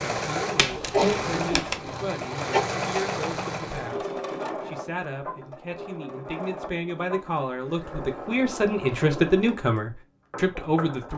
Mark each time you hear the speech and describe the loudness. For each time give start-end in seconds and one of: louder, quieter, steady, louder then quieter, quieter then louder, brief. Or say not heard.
0.1-11.1 louder.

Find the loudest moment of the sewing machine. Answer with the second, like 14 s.
3 s.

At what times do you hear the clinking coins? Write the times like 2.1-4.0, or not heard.
0.6-1.8.